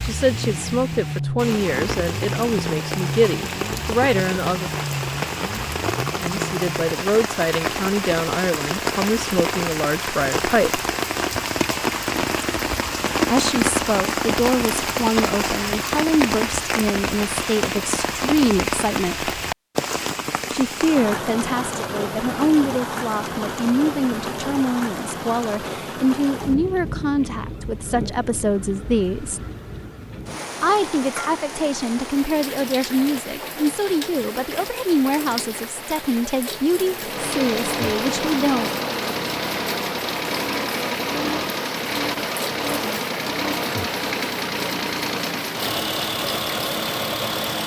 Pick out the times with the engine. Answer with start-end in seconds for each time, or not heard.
0.0-7.0, 37.0-47.6.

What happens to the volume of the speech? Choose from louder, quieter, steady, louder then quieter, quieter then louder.
steady.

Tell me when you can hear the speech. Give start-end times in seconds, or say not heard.
0.0-4.7, 6.2-10.8, 13.3-19.3, 20.5-29.4, 30.6-38.7.